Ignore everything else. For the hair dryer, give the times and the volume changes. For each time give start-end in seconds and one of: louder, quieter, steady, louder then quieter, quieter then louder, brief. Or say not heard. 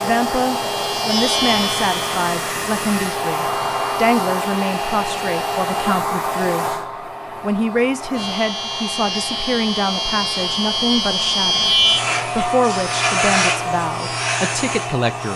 0.0-15.3 quieter.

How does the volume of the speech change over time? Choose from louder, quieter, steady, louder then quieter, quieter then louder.
steady.